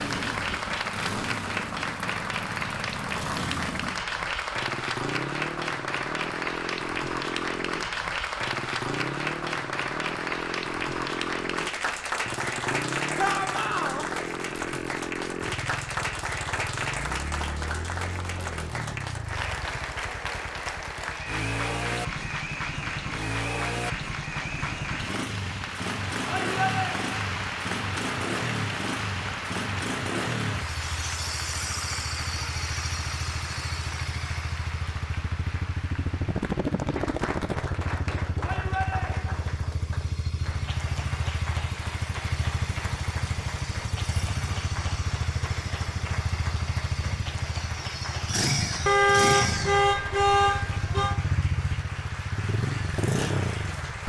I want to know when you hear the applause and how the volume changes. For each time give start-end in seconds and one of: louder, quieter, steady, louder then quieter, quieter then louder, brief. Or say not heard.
0.0-54.0 quieter.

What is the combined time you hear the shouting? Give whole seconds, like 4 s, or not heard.
3 s.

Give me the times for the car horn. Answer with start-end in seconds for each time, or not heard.
48.9-51.1.